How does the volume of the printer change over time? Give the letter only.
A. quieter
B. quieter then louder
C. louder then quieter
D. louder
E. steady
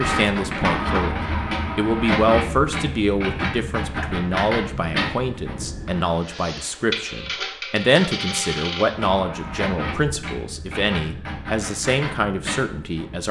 A.